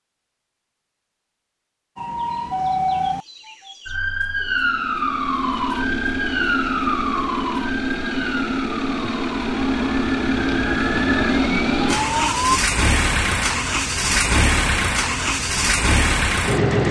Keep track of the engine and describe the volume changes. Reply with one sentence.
The loudness of the engine goes up.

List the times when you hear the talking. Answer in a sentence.
You can't hear the talking here.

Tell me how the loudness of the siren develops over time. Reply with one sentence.
The volume of the siren goes down, then up.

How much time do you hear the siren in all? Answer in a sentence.
You can hear the siren for 11 seconds altogether.